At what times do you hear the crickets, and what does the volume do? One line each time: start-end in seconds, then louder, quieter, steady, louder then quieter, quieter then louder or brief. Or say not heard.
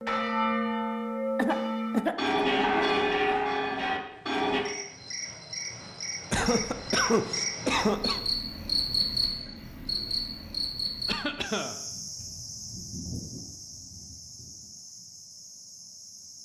4.1-16.3 louder then quieter.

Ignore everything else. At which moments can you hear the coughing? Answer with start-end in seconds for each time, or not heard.
1.4-2.1, 6.3-8.2, 11.1-11.8.